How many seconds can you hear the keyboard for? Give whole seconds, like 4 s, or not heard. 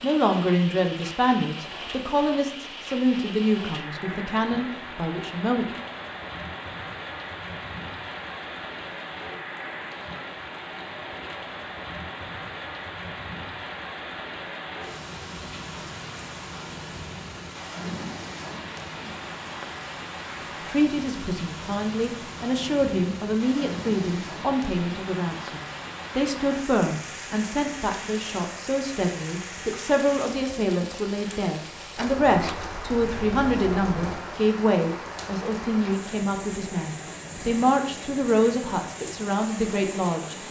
not heard.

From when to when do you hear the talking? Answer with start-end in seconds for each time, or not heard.
0.0-5.7, 20.6-40.4.